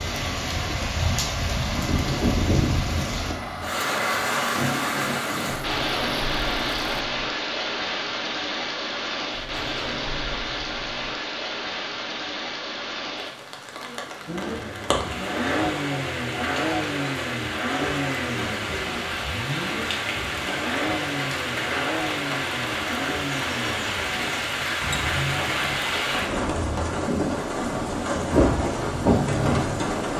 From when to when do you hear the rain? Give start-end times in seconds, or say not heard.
0.0-30.1.